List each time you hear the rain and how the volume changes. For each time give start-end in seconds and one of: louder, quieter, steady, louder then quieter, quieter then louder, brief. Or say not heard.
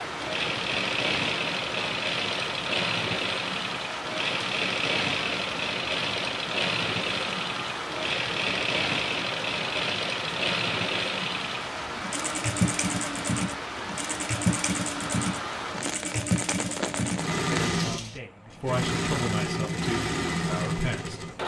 0.0-18.2 steady.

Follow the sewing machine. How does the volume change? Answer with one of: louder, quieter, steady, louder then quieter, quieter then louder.
steady.